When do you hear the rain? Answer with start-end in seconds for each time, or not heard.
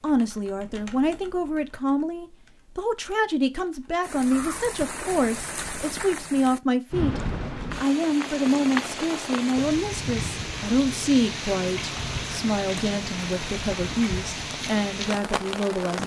4.0-16.0.